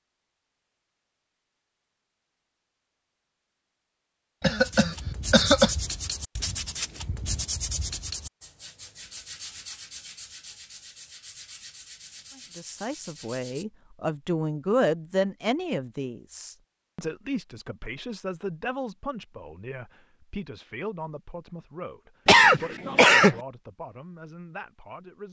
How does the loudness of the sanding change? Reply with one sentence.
The volume of the sanding goes down.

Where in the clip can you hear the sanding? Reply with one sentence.
The sanding can be heard from 4.5 to 13.7 s.